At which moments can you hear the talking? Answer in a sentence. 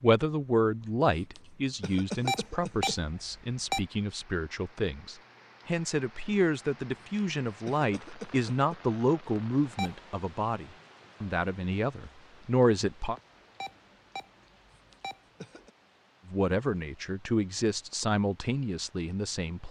The talking can be heard from 0.0 to 13.2 s and from 16.2 to 19.6 s.